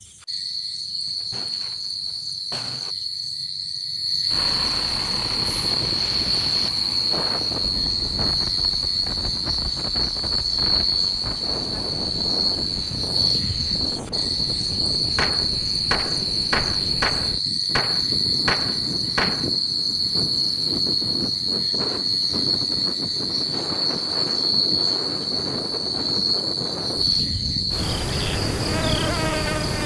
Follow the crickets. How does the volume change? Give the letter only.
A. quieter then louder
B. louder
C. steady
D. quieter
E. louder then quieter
C.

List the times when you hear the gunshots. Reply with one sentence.
You can hear the gunshots from 1.2 to 3.0 s and from 15.2 to 19.5 s.